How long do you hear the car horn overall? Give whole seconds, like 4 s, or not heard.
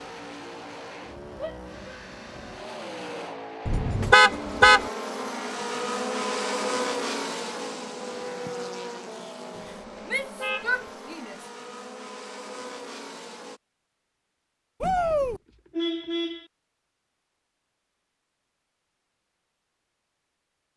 4 s.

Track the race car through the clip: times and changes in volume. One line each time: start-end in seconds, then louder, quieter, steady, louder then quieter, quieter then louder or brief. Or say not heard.
0.0-13.6 louder then quieter.